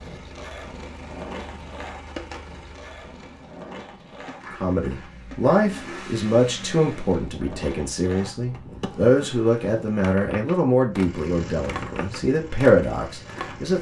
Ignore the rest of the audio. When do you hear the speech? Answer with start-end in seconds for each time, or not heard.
4.6-13.7.